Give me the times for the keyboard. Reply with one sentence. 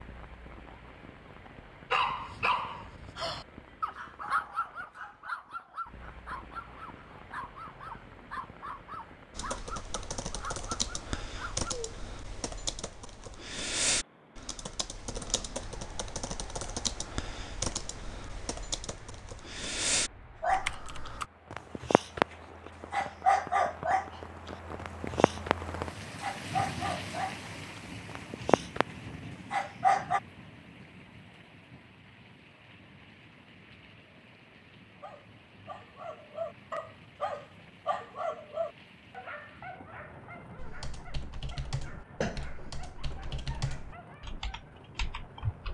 You can hear the keyboard from 9.3 to 21.2 s and from 40.5 to 45.6 s.